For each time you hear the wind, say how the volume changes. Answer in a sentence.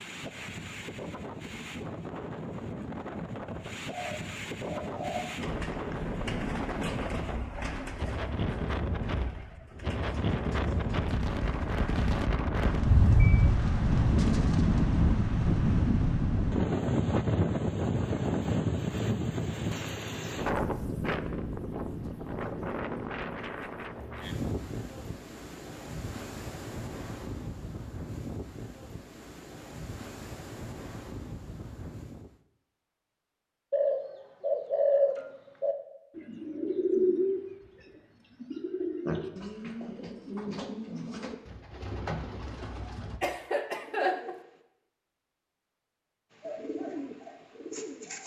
You can hear the wind from 0.0 to 32.4 s, getting louder then quieter.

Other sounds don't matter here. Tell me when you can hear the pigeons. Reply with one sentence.
The pigeons can be heard from 3.9 to 15.0 s, from 33.7 to 43.2 s, from 43.8 to 44.4 s and from 46.4 to 48.2 s.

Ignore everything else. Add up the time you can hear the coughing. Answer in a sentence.
You can hear the coughing for 2 seconds altogether.